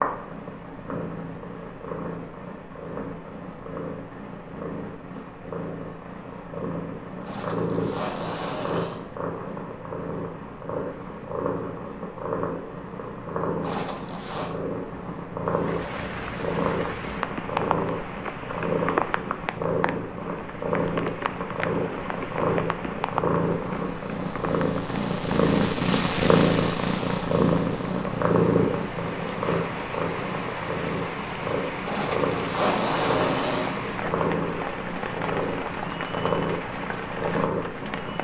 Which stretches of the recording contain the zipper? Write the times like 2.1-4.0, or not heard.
7.2-9.1, 13.6-14.5, 31.9-33.8.